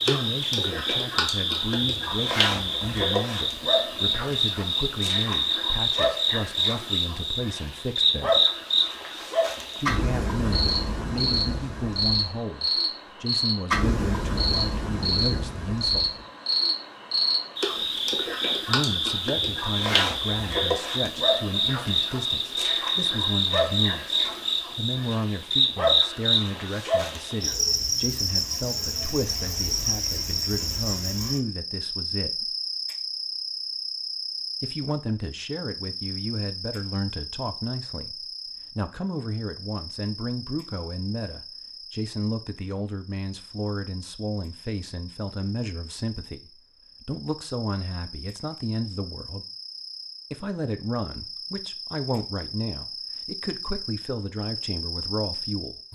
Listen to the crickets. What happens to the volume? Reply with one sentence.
The volume of the crickets goes down.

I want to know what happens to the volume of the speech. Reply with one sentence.
The loudness of the speech stays about the same.